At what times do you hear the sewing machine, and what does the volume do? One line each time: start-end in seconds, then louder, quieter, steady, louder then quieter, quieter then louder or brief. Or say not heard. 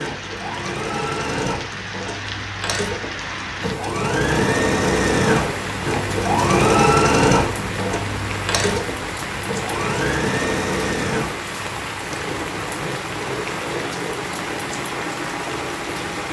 0.0-16.2 louder then quieter.